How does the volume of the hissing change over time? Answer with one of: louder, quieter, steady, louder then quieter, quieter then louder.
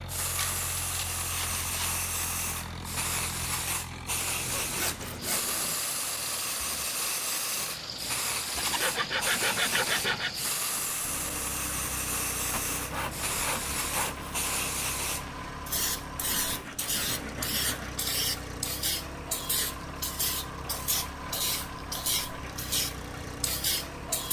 steady.